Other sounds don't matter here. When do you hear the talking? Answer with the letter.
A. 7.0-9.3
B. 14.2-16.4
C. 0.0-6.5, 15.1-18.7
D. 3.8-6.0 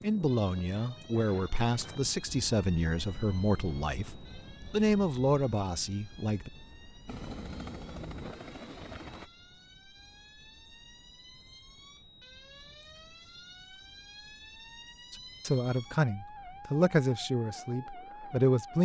C.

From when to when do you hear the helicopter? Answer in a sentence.
You can hear the helicopter from 7.0 to 9.3 s.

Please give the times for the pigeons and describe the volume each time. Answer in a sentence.
The pigeons can't be heard in this clip.